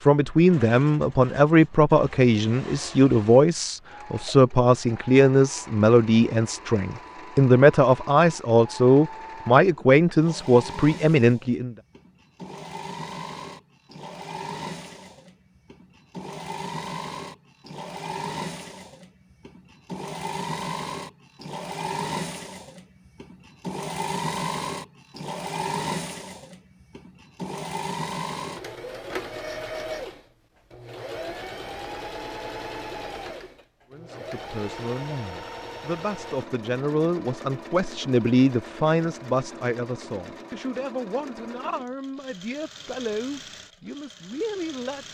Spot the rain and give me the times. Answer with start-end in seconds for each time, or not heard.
not heard.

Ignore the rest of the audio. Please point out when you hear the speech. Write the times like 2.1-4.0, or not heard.
0.0-11.8, 33.9-45.0.